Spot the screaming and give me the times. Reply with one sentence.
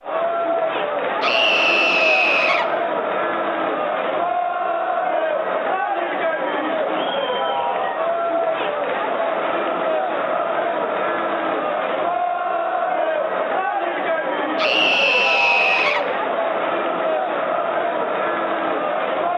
You can hear the screaming from 1.2 to 2.7 s and from 14.6 to 16.1 s.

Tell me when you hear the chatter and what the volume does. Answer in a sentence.
You can hear the chatter from 0.0 to 19.3 s, at a steady volume.